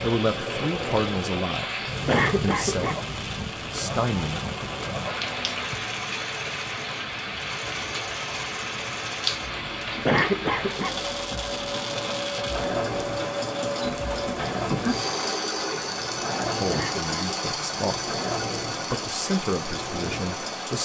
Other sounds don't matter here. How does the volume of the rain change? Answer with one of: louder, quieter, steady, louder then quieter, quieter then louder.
steady.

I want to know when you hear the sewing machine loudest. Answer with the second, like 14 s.
15 s.